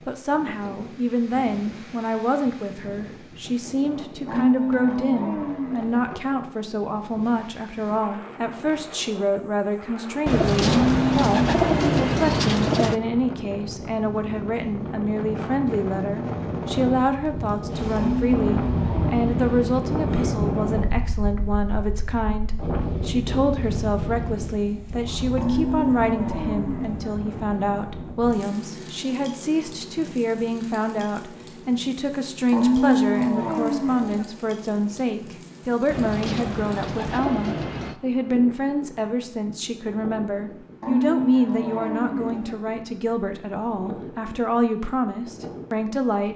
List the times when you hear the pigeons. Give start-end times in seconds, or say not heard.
10.2-13.0, 35.9-38.0.